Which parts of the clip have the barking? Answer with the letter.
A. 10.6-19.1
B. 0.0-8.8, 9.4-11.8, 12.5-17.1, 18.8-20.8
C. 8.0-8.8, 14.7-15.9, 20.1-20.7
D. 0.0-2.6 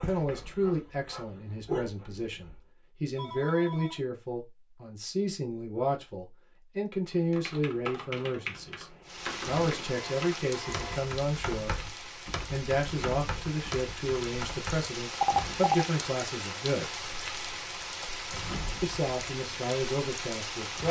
D.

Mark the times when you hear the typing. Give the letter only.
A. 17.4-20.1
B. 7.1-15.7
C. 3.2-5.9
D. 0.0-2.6
B.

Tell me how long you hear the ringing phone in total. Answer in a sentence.
You can hear the ringing phone for 3 seconds altogether.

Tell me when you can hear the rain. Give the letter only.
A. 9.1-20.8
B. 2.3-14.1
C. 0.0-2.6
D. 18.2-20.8
A.